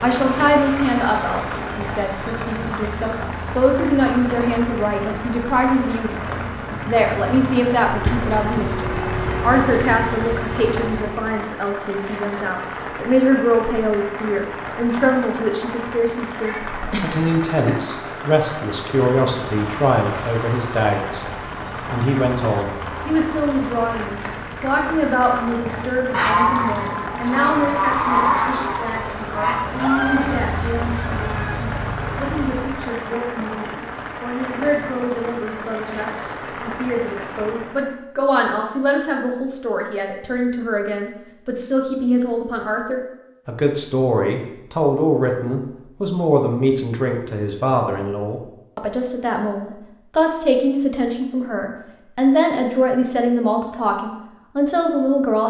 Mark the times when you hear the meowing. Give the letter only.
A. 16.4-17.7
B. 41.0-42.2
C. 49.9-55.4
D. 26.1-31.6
A.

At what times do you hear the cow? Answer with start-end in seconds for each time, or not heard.
26.1-31.6.